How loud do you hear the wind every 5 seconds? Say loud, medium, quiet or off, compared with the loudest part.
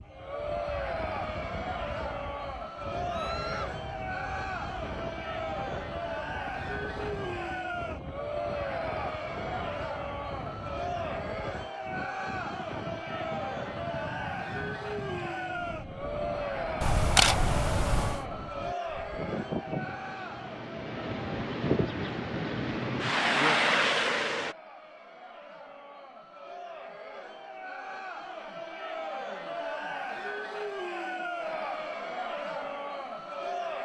quiet, quiet, quiet, medium, loud, off, off.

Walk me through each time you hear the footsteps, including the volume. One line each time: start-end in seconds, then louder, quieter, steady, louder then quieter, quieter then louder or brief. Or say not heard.
not heard.